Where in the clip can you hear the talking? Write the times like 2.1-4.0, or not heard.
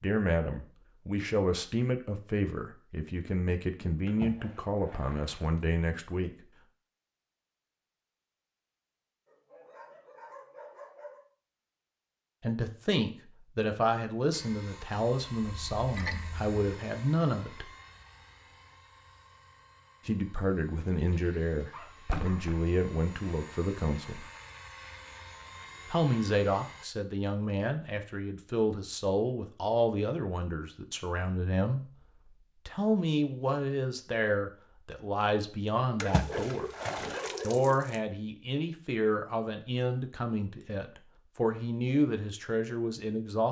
0.0-6.3, 12.4-17.7, 20.1-24.3, 25.9-31.9, 32.6-36.6, 37.4-43.4.